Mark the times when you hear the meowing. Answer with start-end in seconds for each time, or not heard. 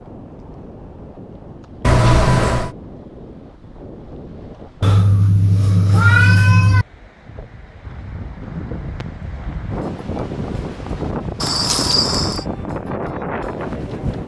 1.8-2.7, 4.8-6.8, 11.4-12.4.